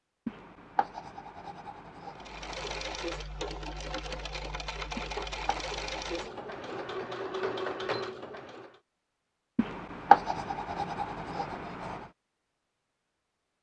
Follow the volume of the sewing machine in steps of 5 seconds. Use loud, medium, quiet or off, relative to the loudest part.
loud, loud, off.